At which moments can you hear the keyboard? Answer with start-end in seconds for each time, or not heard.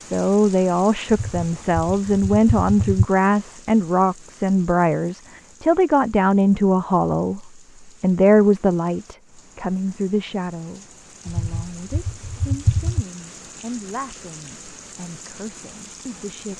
1.1-3.0, 11.2-13.1.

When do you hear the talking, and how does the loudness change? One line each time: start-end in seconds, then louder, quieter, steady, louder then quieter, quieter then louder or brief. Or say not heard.
0.1-7.4 steady
8.0-16.5 quieter.